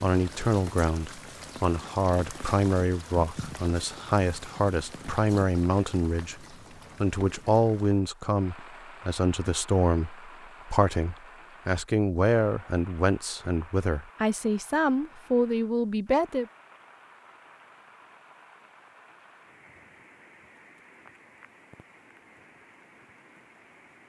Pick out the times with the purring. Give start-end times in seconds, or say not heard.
not heard.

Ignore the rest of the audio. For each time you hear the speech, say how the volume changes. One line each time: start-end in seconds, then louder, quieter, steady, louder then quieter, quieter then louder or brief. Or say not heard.
0.0-16.4 steady.